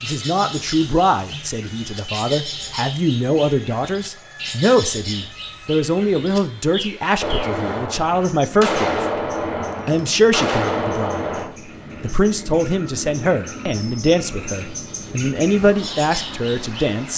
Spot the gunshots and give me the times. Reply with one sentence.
You can hear the gunshots from 7.2 to 11.5 s.